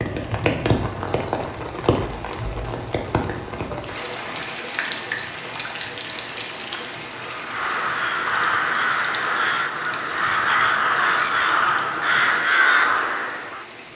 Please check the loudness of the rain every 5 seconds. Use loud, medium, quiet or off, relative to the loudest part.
loud, medium, medium.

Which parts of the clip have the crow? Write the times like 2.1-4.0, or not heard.
7.2-13.7.